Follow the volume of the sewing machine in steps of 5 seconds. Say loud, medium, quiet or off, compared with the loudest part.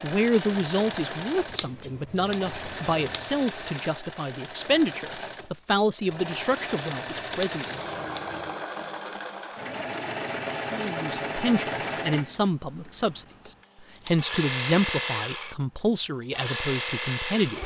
medium, loud, loud, loud.